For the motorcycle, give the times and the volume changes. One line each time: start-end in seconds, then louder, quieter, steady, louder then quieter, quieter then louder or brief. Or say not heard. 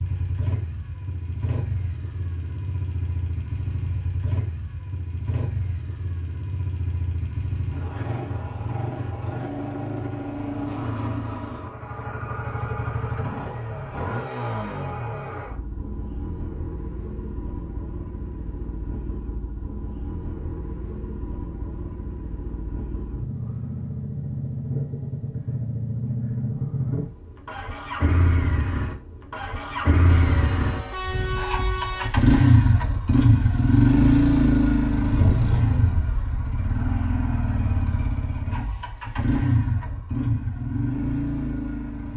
0.0-42.1 louder.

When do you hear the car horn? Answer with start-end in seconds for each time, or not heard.
30.1-32.1.